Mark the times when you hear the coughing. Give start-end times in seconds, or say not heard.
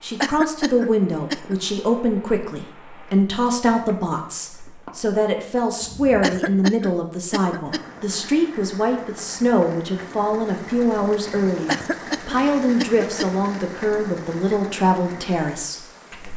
0.2-1.6, 6.2-7.8, 11.7-13.2.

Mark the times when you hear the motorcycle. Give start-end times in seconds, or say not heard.
not heard.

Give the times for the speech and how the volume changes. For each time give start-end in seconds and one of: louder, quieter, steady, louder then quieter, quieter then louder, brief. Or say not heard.
0.0-16.3 steady.